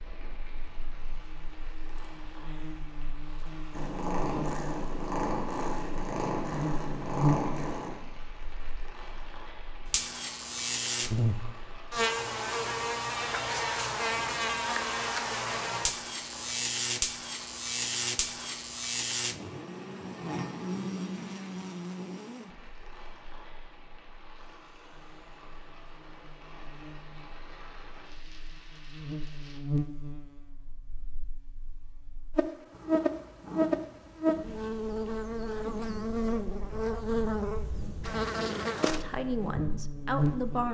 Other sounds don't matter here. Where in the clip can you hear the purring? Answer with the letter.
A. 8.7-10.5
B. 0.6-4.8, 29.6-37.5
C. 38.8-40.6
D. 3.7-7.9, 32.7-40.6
D.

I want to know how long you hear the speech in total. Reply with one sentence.
The speech can be heard for 2 seconds in total.